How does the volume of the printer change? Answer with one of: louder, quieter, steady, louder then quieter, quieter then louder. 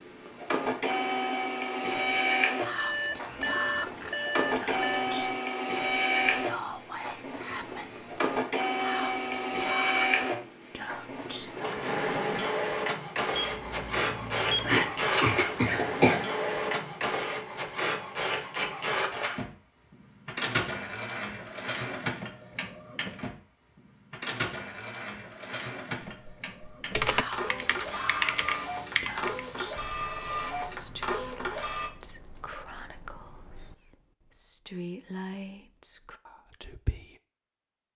quieter.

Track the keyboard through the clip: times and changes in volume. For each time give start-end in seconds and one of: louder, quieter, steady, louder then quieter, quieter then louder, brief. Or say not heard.
26.1-33.8 quieter.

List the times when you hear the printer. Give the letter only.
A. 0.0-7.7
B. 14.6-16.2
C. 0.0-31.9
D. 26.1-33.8
C.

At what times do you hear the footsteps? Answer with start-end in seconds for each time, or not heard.
not heard.